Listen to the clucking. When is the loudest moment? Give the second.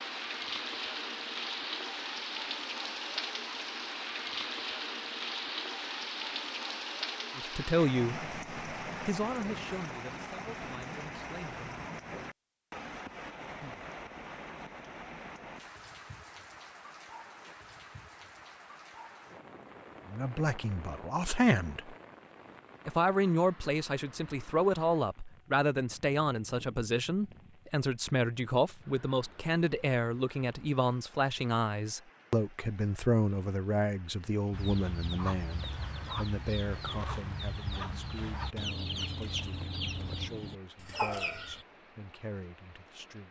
41 s.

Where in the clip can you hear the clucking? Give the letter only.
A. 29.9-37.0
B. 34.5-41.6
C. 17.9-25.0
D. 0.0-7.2
B.